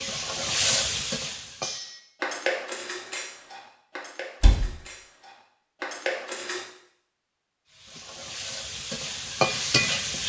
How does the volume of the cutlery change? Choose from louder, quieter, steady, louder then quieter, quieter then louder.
quieter then louder.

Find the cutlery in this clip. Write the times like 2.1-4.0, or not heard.
1.6-6.7.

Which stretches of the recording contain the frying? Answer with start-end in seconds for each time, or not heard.
0.0-1.8, 7.7-10.2.